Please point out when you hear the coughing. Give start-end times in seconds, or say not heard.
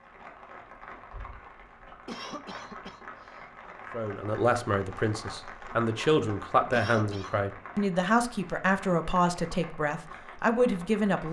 2.0-3.5, 6.7-7.4.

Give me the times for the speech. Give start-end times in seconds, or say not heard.
3.9-11.2.